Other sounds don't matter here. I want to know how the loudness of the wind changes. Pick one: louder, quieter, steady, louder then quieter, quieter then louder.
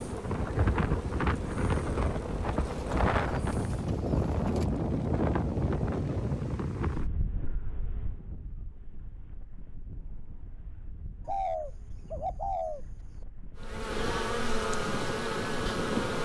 quieter then louder.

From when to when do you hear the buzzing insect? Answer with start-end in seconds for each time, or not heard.
0.0-3.6, 13.6-16.2.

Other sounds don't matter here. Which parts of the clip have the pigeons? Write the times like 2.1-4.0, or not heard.
2.6-4.7, 11.2-12.8.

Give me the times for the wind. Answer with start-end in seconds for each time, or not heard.
0.0-16.2.